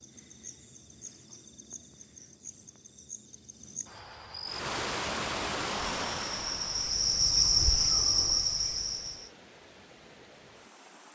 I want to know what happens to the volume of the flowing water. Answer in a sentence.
The volume of the flowing water goes down.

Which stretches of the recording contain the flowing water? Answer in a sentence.
The flowing water can be heard from 4.5 to 11.0 s.